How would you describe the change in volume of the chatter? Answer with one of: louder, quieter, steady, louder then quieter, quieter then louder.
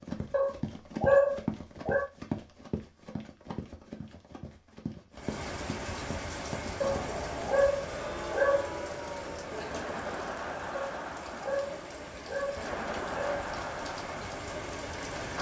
steady.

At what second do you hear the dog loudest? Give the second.
1 s.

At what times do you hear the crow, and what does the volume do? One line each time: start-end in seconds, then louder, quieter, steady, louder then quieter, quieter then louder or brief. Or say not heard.
not heard.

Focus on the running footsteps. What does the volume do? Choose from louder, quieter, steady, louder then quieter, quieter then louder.
quieter.